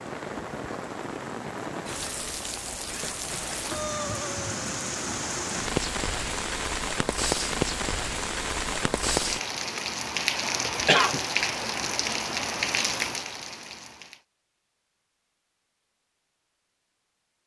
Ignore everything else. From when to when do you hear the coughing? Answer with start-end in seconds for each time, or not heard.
9.6-11.2.